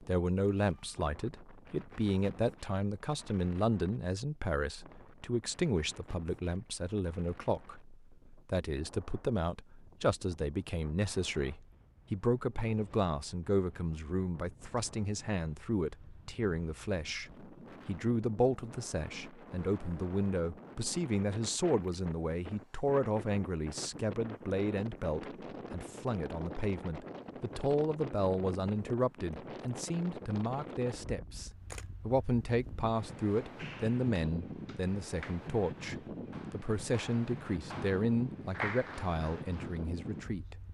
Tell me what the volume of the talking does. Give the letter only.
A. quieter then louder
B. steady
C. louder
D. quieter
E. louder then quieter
B.